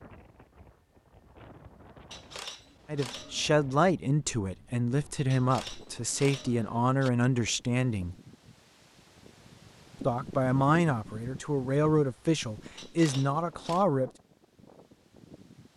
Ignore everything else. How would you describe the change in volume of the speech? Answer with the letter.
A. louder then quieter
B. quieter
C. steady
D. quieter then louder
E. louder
C.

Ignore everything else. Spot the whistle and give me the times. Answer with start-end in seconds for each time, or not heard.
not heard.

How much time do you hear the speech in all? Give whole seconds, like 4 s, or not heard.
9 s.